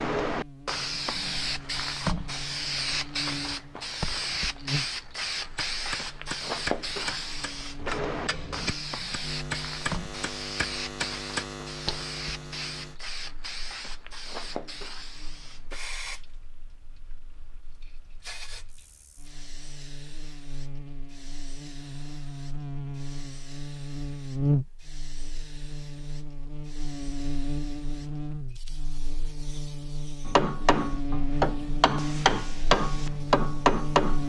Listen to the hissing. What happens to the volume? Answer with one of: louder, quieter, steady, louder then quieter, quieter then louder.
quieter.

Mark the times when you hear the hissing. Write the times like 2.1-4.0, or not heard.
0.0-34.2.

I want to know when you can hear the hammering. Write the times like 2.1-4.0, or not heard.
5.3-12.0, 30.2-34.2.